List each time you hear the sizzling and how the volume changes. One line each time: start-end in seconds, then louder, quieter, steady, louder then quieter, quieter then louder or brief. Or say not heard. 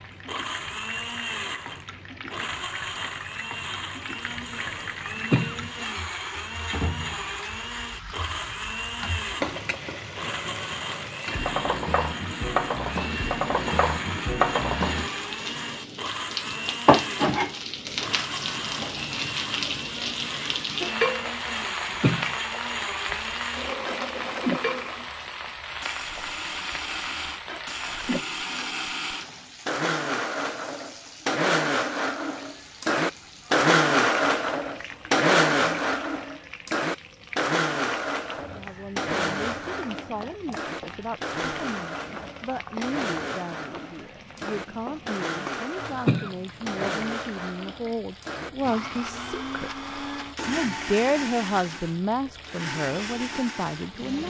0.0-54.2 louder then quieter.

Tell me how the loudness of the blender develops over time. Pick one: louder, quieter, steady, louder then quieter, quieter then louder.
louder then quieter.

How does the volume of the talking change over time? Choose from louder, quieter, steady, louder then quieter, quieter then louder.
louder.